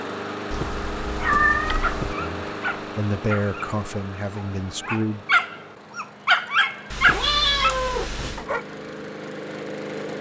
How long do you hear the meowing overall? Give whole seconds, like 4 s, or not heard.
3 s.